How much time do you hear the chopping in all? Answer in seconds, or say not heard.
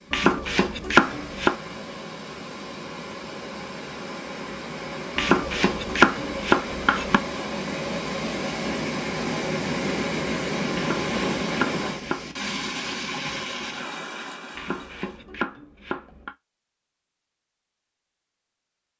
7 s.